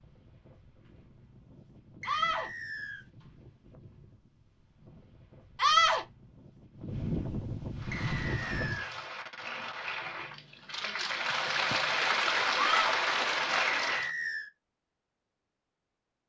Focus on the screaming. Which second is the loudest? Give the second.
6 s.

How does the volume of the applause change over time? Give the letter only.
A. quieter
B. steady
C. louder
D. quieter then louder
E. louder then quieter
C.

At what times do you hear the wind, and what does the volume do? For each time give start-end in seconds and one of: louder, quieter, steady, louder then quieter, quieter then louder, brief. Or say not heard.
0.0-8.8 louder.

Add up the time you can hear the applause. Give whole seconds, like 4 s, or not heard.
6 s.